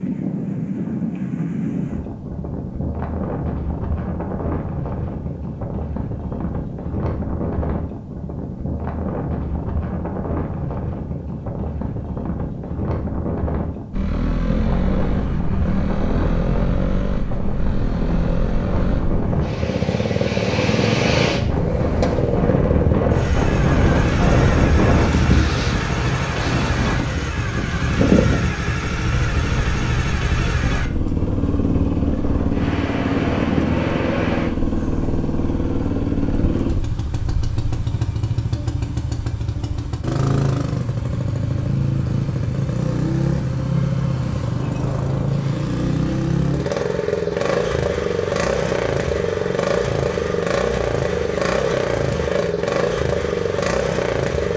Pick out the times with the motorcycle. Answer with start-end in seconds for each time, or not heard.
13.9-54.5.